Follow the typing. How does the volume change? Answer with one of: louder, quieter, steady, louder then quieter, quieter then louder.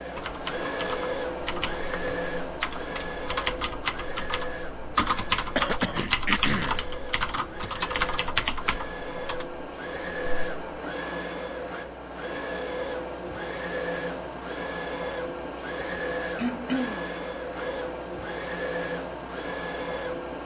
louder.